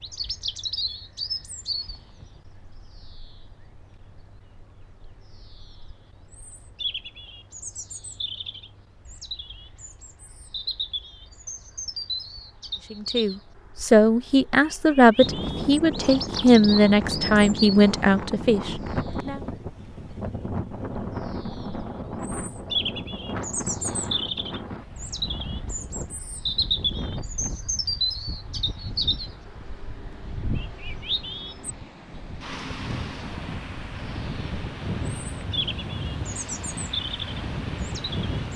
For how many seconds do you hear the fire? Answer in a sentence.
The fire can't be heard in this clip.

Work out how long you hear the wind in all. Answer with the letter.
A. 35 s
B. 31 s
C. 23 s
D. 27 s
C.